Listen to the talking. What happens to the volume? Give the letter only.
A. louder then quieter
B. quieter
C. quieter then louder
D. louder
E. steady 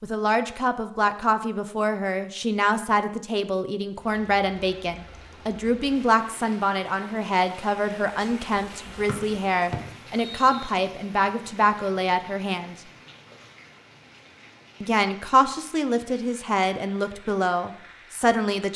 E.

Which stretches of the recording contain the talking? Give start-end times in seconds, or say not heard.
0.0-12.8, 14.8-18.7.